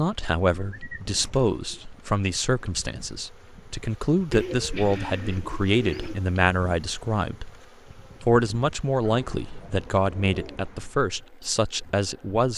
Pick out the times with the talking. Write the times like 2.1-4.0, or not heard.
0.0-7.5, 8.2-12.5.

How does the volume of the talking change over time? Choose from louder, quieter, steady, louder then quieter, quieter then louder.
steady.